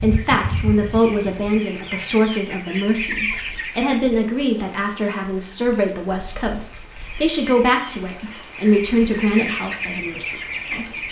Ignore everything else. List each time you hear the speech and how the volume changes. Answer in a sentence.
The speech can be heard from 0.0 to 11.0 s, at a steady volume.